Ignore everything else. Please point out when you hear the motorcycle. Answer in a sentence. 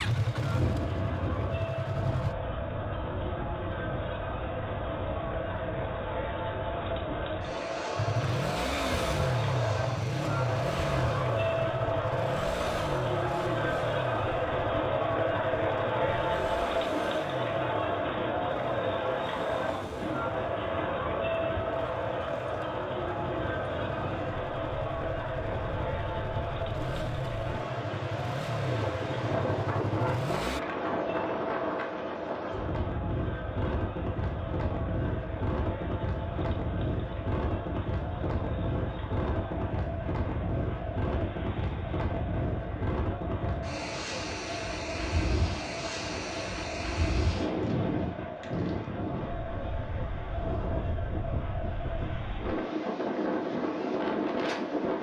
You can hear the motorcycle from 0.0 to 2.4 s and from 8.0 to 30.6 s.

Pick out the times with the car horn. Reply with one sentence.
You can't hear the car horn here.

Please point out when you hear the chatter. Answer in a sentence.
You can hear the chatter from 0.1 to 54.9 s.